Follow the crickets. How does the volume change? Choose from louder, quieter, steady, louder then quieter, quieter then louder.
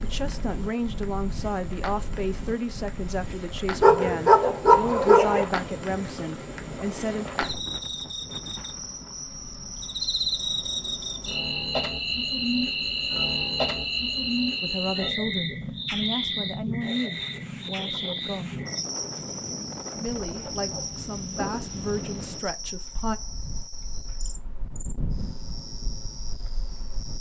louder then quieter.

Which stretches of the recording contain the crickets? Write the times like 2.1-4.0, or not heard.
0.0-27.1.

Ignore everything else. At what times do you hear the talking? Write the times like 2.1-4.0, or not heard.
0.0-7.2, 14.6-18.6, 19.9-23.1.